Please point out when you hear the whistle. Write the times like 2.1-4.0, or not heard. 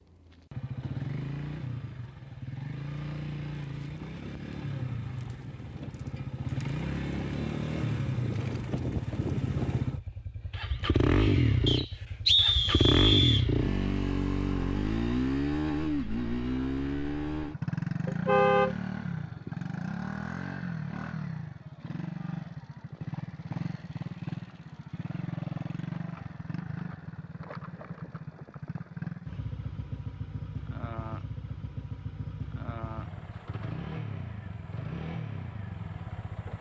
11.7-13.4.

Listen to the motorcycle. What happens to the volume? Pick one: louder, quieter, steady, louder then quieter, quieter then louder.
louder then quieter.